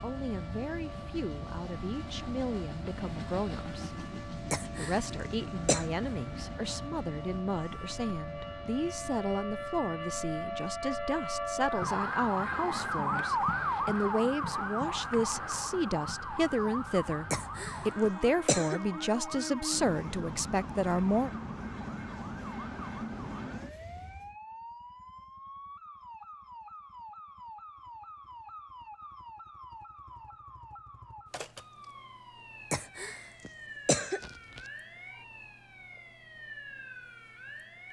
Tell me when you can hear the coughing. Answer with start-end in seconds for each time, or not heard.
4.5-5.8, 17.3-18.8, 32.7-34.6.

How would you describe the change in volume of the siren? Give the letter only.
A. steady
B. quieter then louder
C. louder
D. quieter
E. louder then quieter
E.